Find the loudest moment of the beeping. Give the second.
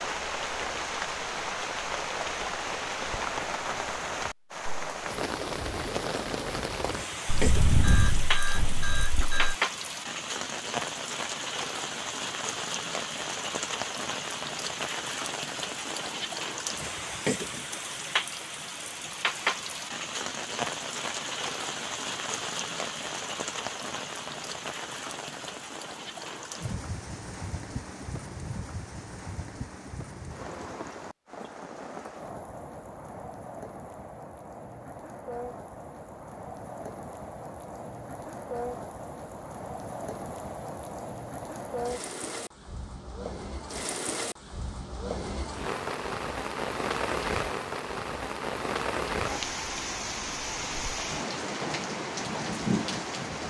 8 s.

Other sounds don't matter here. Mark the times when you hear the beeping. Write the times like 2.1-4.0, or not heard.
7.2-9.6.